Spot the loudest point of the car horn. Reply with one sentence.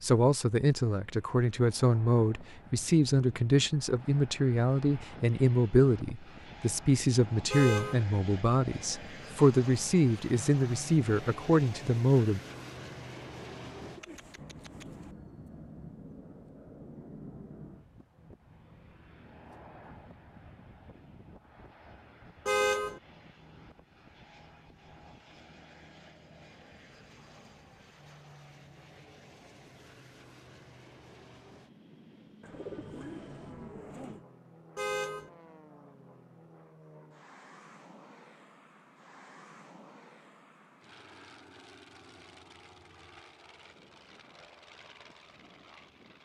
The volume of the car horn peaks at 23 seconds.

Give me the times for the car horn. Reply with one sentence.
The car horn can be heard from 7.5 to 8.1 s, from 22.4 to 23.0 s and from 34.8 to 35.3 s.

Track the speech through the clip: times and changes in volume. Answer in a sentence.
The speech can be heard from 0.0 to 12.4 s, at a steady volume.